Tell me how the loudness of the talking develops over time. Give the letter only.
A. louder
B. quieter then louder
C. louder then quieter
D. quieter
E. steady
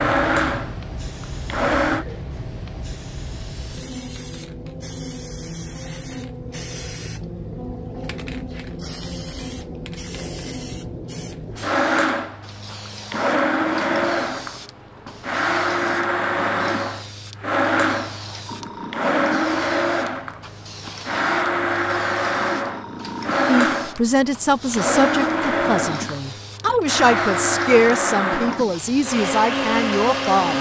B.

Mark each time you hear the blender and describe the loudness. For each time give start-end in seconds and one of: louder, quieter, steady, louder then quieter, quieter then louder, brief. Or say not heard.
0.0-2.0 brief
11.6-30.5 steady.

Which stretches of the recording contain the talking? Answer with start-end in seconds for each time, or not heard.
23.4-30.5.